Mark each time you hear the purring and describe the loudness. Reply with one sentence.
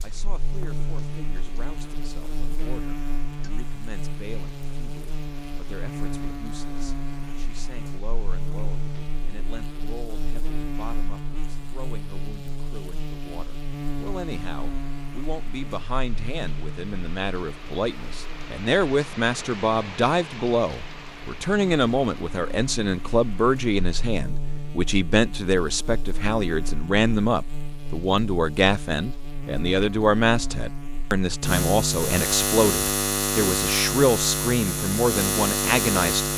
The purring can't be heard in this clip.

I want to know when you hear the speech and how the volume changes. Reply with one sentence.
The speech can be heard from 0.0 to 36.3 s, getting louder.